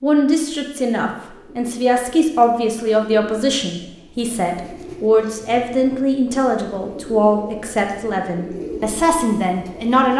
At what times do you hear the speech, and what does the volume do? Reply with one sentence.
The speech can be heard from 0.0 to 10.1 s, at a steady volume.